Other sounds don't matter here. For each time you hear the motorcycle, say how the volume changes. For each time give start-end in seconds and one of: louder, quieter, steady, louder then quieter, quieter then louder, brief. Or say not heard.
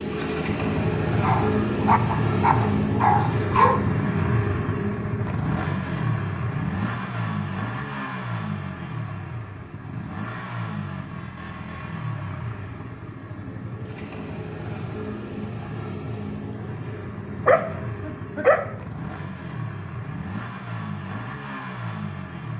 0.0-22.5 quieter.